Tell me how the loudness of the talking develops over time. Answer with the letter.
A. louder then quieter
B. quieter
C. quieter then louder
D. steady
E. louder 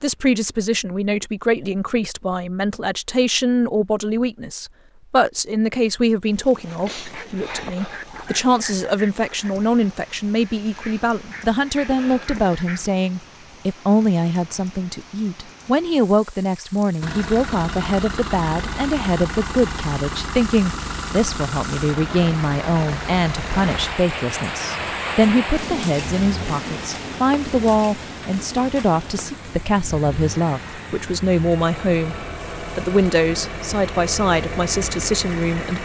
D.